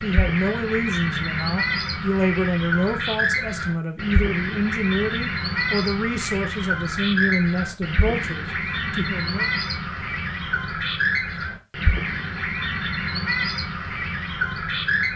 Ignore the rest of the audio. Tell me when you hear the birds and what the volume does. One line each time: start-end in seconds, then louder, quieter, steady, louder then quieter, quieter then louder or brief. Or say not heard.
0.0-15.1 steady.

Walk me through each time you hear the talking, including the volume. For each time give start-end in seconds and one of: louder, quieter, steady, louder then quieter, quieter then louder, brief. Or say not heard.
0.0-9.5 steady.